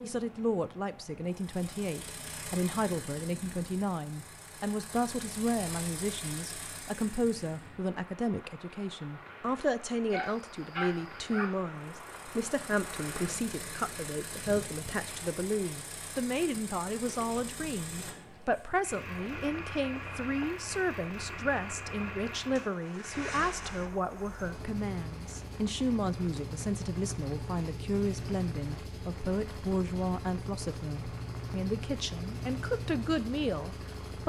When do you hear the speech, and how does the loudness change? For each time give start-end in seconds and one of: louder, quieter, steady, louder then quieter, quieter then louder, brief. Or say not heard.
0.0-34.2 steady.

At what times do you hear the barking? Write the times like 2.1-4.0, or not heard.
10.1-11.5.